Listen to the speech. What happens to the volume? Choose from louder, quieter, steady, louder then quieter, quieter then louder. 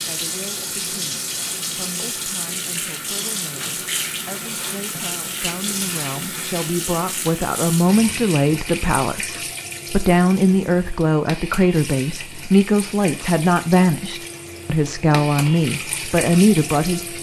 louder.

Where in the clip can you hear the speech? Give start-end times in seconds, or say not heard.
0.1-17.1.